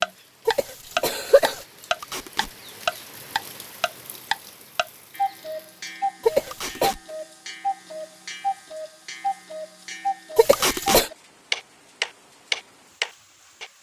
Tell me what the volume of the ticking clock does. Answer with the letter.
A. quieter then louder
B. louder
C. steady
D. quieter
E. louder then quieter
A.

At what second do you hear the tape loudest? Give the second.
11 s.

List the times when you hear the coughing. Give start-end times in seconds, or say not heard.
0.5-1.6, 6.2-7.0, 10.3-11.1.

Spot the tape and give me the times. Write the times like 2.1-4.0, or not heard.
2.0-2.5, 6.5-7.0, 10.5-11.1.